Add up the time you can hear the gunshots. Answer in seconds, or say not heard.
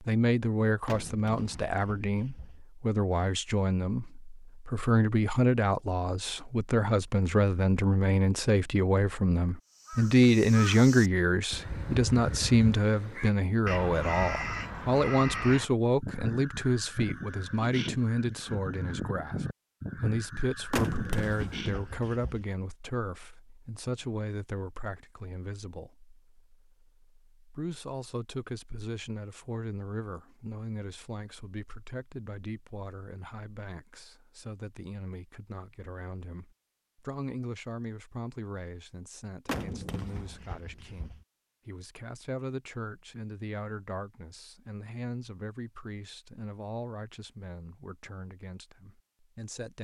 5 s.